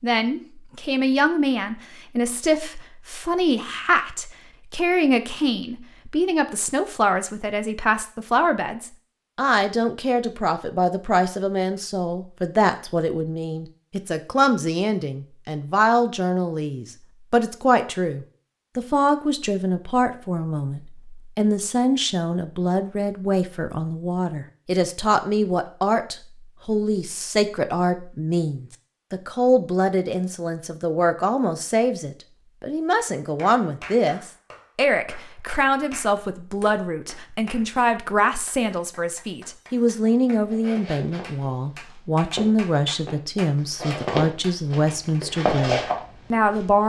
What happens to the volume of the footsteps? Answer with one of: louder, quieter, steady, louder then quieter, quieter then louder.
louder.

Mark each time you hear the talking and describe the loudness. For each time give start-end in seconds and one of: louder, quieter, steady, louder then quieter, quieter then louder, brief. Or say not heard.
0.0-46.8 steady.